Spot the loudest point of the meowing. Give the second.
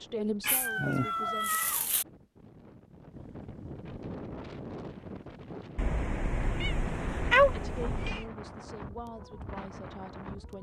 7 s.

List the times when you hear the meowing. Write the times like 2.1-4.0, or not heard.
0.4-2.0, 5.8-8.2.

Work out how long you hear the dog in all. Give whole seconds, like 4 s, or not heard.
not heard.